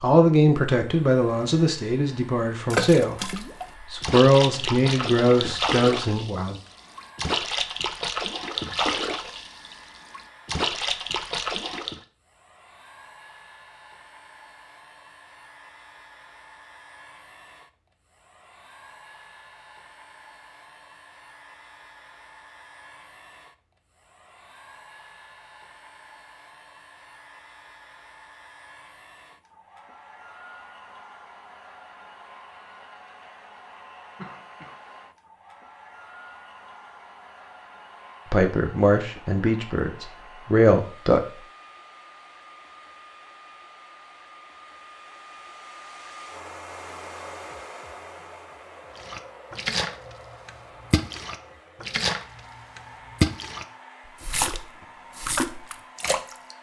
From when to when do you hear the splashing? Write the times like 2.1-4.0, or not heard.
2.7-12.0, 49.0-56.5.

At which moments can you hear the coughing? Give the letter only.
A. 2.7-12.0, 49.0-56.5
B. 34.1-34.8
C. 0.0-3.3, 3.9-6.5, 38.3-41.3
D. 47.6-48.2
B.